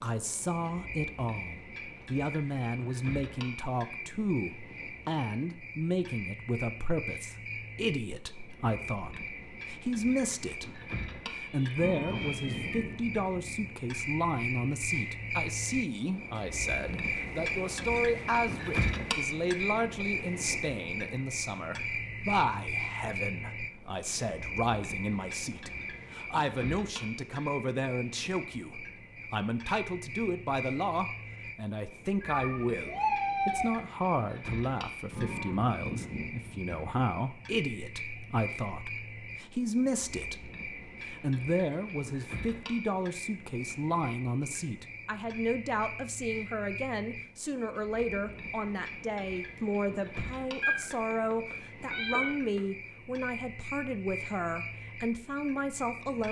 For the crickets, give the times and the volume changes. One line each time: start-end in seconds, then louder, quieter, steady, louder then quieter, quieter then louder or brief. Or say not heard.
0.1-56.2 louder then quieter.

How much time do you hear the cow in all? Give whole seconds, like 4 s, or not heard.
4 s.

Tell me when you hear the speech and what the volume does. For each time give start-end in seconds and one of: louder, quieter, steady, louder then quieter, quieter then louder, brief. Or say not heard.
0.0-56.2 steady.